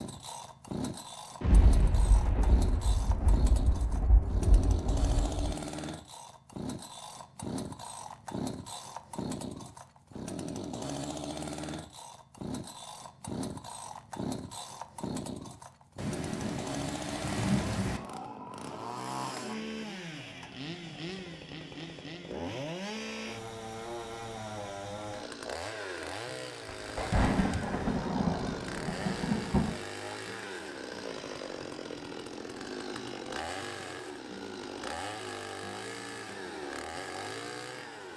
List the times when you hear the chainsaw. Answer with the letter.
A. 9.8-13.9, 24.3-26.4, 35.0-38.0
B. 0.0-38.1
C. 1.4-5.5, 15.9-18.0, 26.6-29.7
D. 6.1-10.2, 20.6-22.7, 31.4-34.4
B.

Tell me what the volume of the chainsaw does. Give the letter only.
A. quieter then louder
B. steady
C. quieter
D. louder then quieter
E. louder
B.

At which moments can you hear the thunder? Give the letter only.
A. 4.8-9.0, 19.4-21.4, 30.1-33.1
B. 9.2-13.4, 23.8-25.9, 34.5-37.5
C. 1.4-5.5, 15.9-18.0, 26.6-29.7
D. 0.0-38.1
C.